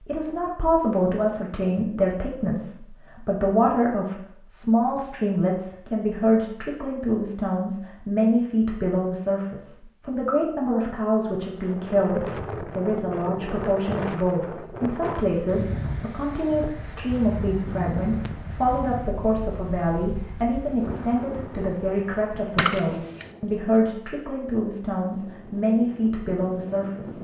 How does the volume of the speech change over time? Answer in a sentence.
The volume of the speech stays about the same.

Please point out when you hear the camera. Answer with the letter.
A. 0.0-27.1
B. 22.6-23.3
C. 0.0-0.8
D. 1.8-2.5
B.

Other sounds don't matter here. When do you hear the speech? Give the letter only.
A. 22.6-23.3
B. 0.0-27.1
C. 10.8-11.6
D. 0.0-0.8
B.